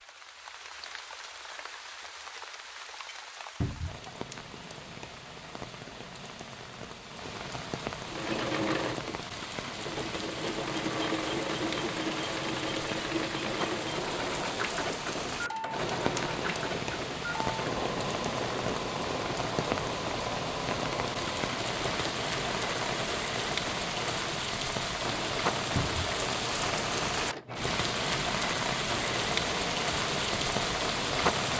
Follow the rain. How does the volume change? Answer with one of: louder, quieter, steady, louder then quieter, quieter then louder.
louder.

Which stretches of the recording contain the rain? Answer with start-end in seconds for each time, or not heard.
0.0-31.5.